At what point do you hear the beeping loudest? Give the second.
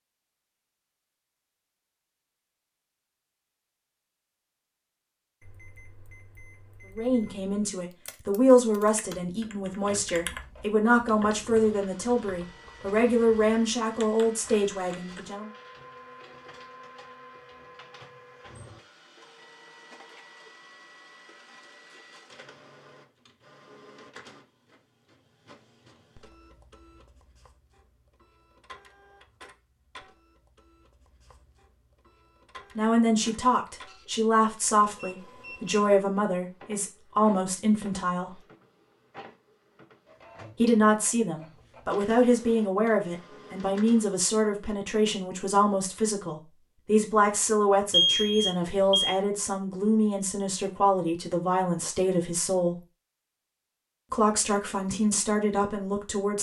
48 s.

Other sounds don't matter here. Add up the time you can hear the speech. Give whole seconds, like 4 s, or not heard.
29 s.